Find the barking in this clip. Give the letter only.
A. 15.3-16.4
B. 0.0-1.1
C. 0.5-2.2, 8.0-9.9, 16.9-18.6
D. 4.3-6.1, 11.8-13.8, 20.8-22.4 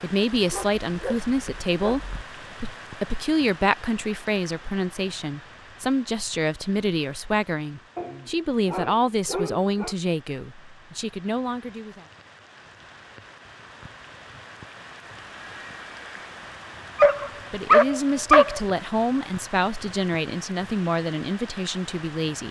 C.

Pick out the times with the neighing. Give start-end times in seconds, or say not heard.
15.3-16.4.